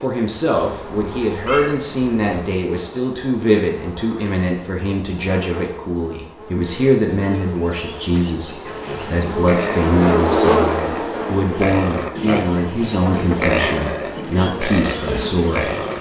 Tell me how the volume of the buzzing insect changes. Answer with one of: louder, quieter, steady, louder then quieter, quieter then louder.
louder then quieter.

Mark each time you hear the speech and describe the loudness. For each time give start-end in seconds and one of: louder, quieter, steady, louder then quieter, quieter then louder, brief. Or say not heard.
0.0-15.7 steady.